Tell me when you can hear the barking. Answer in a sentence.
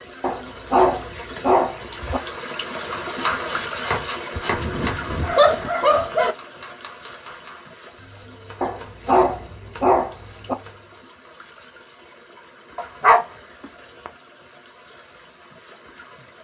You can hear the barking from 0.2 to 2.2 s, from 4.3 to 6.3 s, from 8.6 to 10.6 s and from 12.8 to 14.1 s.